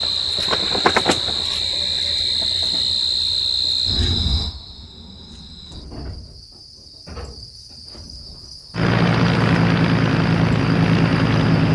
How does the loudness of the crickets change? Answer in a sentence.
The loudness of the crickets goes down.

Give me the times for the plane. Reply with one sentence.
The plane can be heard from 8.7 to 11.6 s.